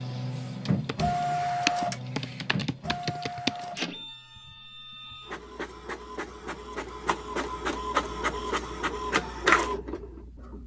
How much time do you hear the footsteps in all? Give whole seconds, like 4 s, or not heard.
not heard.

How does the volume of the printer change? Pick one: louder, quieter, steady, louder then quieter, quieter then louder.
quieter then louder.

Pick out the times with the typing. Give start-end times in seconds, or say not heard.
0.0-3.7.